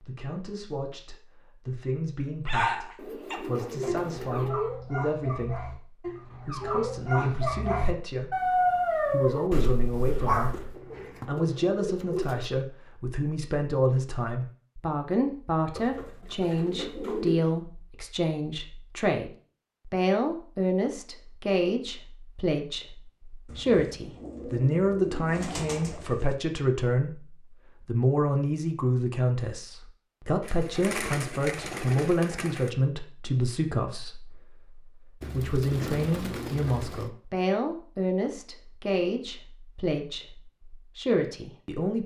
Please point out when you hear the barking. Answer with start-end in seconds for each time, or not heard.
2.5-10.8.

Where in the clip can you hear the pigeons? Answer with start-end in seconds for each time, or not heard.
3.0-4.5, 10.7-12.5, 15.8-17.4, 23.4-26.4, 30.4-32.7, 35.2-37.1.